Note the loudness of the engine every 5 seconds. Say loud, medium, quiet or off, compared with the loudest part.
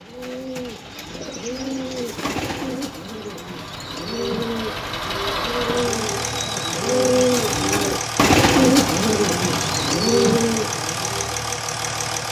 medium, loud, loud.